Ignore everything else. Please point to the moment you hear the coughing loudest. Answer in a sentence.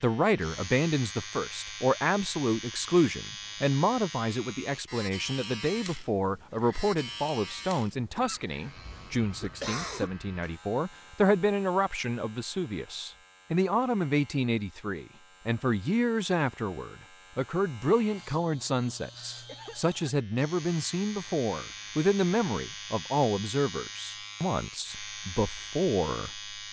The loudest moment of the coughing is at 10 seconds.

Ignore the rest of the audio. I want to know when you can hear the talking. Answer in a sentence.
The talking can be heard from 0.0 to 26.4 s.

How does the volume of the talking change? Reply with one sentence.
The loudness of the talking stays about the same.